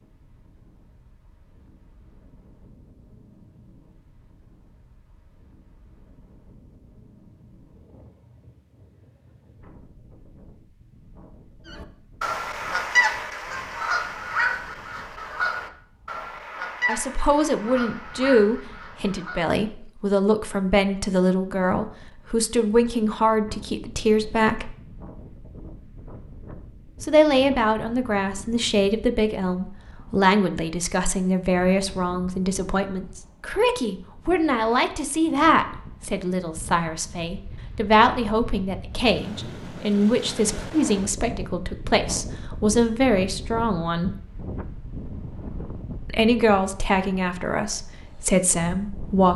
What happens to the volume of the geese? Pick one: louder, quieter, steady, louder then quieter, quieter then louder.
quieter.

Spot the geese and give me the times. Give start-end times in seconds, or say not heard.
11.7-19.5.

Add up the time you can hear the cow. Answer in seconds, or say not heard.
not heard.